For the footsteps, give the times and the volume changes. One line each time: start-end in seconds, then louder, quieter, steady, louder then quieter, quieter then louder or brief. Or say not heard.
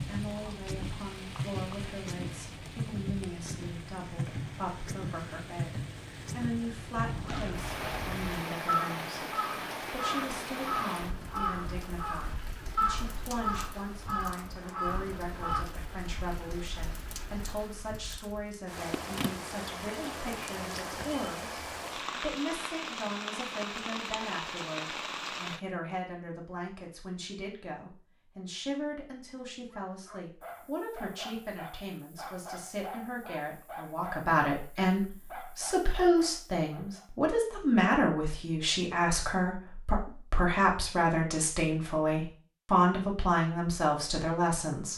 not heard.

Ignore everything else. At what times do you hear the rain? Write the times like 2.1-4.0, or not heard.
0.0-25.6.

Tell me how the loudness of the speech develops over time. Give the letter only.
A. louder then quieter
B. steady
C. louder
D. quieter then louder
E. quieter
C.